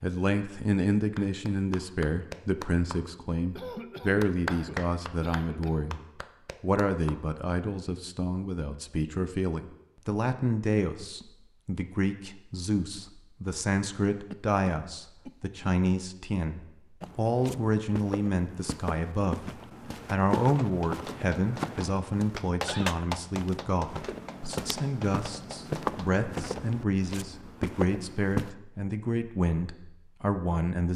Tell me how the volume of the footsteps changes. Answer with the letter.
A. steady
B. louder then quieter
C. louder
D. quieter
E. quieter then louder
C.